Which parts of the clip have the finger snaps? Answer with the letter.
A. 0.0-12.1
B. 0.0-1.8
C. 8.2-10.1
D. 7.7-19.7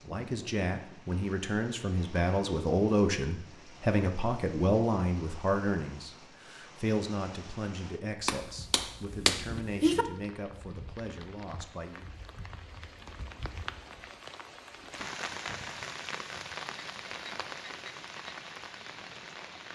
C.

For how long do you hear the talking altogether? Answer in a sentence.
The talking can be heard for 12 seconds in total.